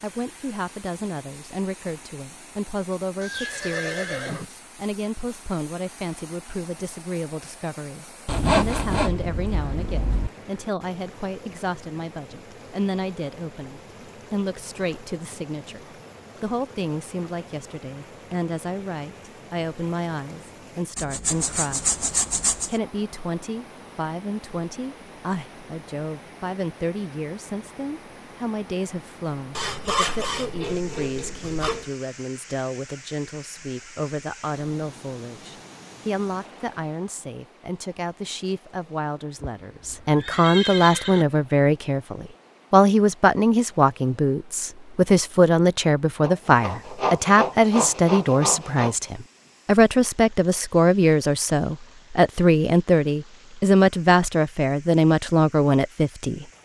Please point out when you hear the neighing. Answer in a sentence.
The neighing can be heard from 3.2 to 4.5 s and from 39.4 to 41.2 s.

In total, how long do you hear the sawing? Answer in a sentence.
The sawing can be heard for 9 seconds in total.